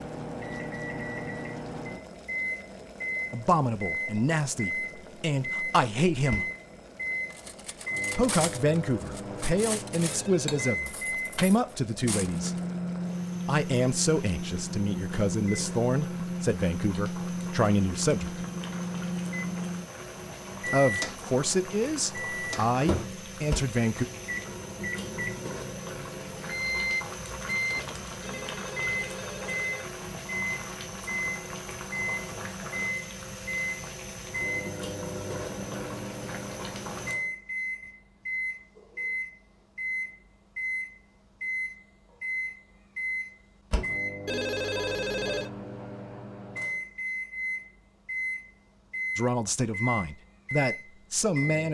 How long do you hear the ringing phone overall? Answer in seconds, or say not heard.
4 s.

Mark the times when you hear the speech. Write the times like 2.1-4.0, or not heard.
3.3-6.5, 8.2-12.6, 13.4-18.4, 20.6-24.1, 49.1-51.6.